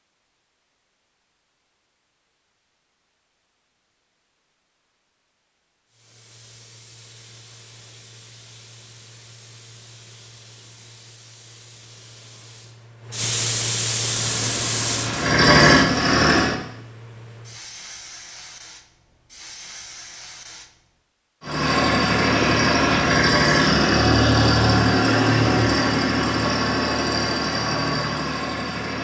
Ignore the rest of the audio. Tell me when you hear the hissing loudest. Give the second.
14 s.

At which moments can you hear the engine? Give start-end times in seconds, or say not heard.
14.0-16.6, 21.4-28.9.